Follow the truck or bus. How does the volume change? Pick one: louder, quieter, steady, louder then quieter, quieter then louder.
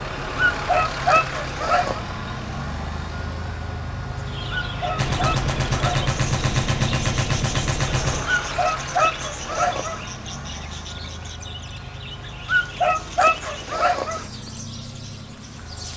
quieter.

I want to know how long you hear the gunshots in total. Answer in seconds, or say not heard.
3 s.